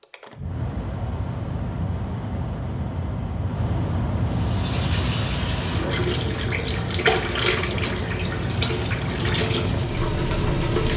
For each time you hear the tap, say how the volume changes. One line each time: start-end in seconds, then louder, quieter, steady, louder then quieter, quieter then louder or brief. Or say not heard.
4.2-10.9 louder then quieter.